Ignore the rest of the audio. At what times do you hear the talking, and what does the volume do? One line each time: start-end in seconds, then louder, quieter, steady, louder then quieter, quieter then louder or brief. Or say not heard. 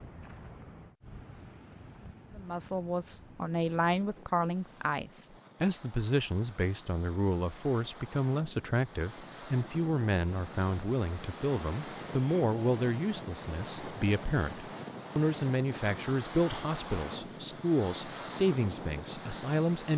2.4-19.9 steady.